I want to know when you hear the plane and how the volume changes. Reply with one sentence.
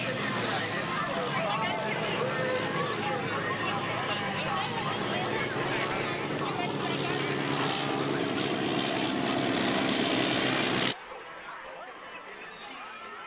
You can hear the plane from 0.0 to 10.9 s, getting louder.